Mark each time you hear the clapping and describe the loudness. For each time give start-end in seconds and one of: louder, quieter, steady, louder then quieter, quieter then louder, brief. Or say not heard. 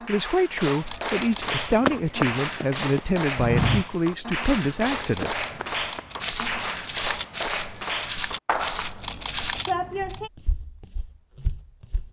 0.0-10.3 steady.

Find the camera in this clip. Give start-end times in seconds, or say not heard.
0.8-1.6, 5.0-6.2, 9.0-10.2.